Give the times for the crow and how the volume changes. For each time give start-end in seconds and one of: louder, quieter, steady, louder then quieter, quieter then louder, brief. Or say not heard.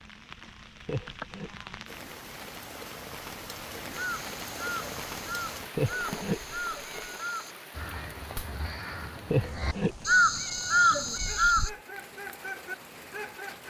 3.9-11.7 louder.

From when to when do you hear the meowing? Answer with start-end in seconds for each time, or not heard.
0.8-1.5, 5.8-7.2, 9.3-11.8.